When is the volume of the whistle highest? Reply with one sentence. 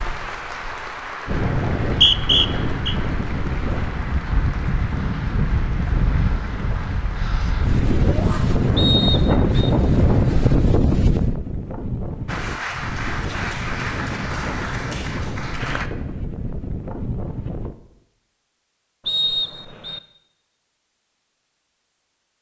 The volume of the whistle peaks at 2 seconds.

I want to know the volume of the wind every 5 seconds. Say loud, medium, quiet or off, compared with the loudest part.
medium, loud, loud, medium, off.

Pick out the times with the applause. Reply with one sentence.
You can hear the applause from 0.0 to 10.6 s and from 12.2 to 15.9 s.